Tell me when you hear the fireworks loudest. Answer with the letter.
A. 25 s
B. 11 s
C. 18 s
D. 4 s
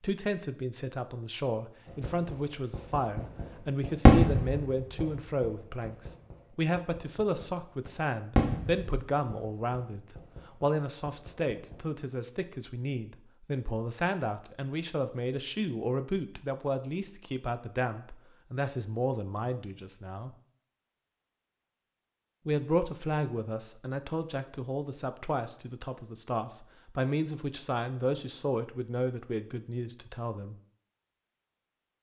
D.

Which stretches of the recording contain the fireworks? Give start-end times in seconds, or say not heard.
1.9-11.8.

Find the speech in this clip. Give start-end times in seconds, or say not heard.
0.0-20.4, 22.4-30.6.